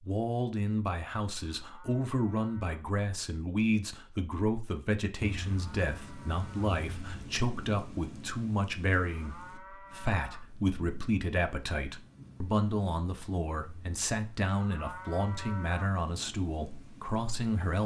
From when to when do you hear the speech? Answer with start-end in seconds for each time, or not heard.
0.0-17.8.